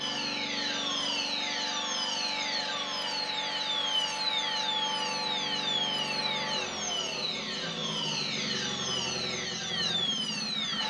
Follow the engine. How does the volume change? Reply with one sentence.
The loudness of the engine stays about the same.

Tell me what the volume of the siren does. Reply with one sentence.
The loudness of the siren stays about the same.